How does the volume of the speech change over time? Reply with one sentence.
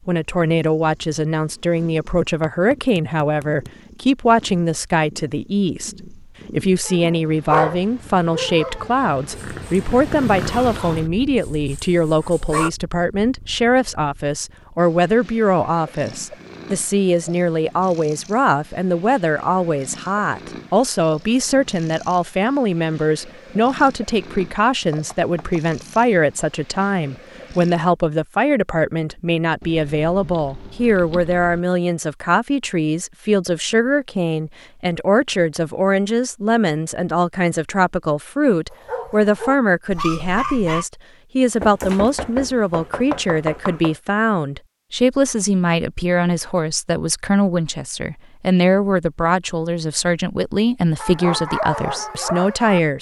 The volume of the speech stays about the same.